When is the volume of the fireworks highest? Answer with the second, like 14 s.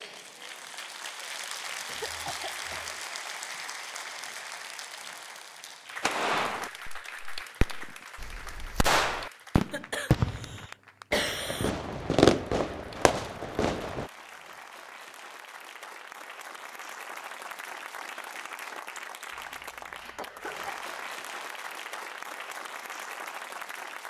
12 s.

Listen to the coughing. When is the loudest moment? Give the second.
11 s.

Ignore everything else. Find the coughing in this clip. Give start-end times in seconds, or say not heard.
1.9-2.9, 9.7-11.7, 19.3-20.9.